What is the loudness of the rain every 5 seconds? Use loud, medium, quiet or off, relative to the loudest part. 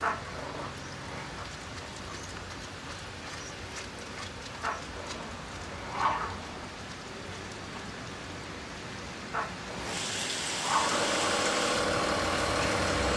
medium, medium, loud.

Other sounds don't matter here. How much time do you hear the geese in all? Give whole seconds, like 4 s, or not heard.
not heard.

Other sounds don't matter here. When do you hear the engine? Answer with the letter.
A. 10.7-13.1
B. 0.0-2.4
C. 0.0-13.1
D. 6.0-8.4
A.